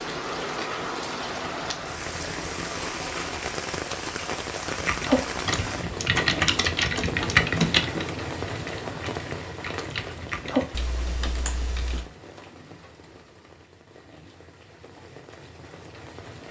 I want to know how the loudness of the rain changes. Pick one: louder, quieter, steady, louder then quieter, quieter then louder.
quieter.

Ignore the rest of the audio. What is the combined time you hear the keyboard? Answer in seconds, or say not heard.
7 s.